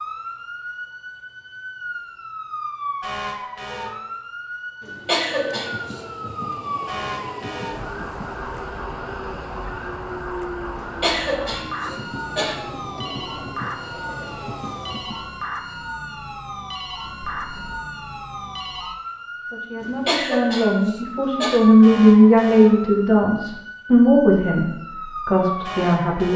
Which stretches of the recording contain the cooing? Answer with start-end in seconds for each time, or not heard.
not heard.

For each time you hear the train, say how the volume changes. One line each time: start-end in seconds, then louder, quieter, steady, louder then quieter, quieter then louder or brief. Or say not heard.
5.1-15.4 steady.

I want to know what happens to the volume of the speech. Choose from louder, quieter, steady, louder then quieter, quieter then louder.
louder then quieter.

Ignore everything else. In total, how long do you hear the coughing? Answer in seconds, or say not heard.
5 s.